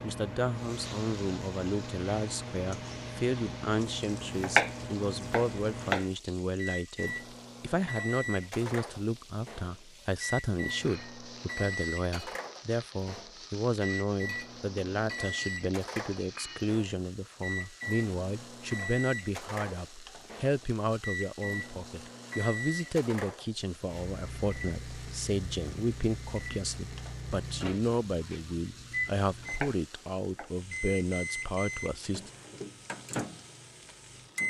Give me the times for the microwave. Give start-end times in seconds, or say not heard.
0.0-34.4.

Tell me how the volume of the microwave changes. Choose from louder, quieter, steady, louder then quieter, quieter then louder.
steady.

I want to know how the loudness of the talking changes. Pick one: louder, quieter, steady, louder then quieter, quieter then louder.
steady.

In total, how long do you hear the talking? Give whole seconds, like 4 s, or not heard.
32 s.